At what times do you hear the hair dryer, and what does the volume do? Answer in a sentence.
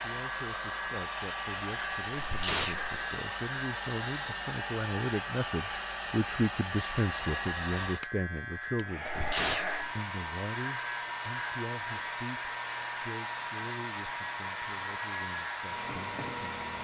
You can hear the hair dryer from 0.0 to 16.8 s, at a steady volume.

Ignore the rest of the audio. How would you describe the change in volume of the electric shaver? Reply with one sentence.
The volume of the electric shaver stays about the same.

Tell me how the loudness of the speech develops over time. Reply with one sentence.
The loudness of the speech goes up, then down.